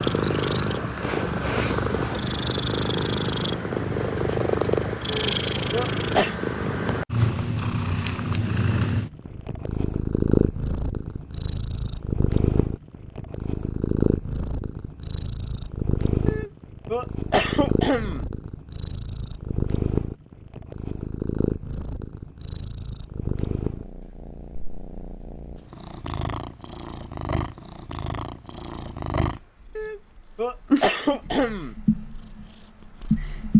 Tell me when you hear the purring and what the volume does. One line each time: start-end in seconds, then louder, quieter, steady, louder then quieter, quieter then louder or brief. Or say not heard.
0.0-33.5 quieter.